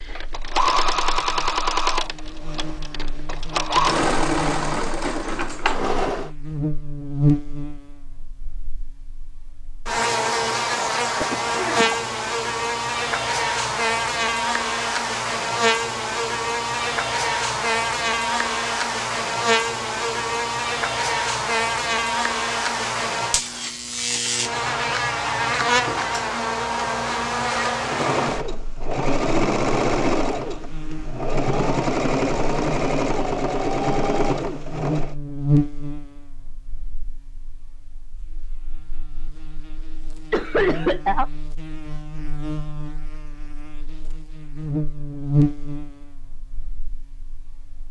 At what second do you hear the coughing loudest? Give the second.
41 s.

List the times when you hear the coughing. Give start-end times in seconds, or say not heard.
10.8-12.0, 40.3-41.2.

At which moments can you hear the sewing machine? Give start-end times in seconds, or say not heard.
0.0-6.3, 27.8-35.1.